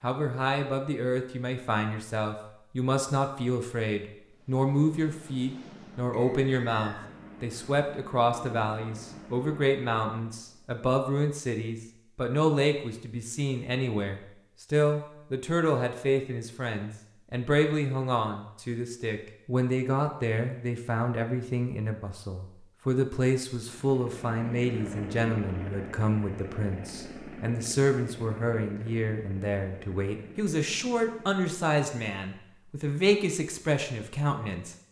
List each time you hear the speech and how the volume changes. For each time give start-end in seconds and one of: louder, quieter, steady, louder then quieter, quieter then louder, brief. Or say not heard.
0.0-34.8 steady.